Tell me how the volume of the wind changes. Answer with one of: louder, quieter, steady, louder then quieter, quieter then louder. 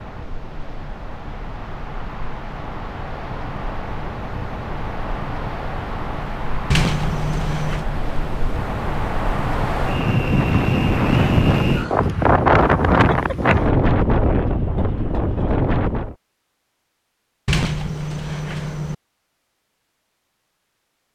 louder.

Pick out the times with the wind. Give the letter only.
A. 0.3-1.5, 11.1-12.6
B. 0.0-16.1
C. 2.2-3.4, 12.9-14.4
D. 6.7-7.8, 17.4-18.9
B.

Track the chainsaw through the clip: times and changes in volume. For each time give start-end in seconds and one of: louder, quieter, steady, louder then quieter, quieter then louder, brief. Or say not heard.
not heard.